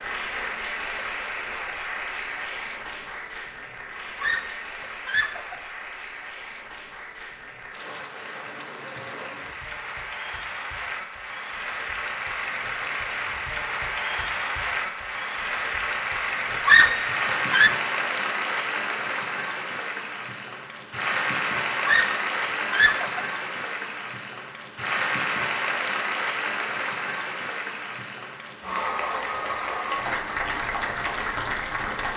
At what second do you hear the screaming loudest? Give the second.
17 s.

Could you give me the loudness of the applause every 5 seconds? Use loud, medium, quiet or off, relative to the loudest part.
medium, medium, loud, loud, loud, loud, loud.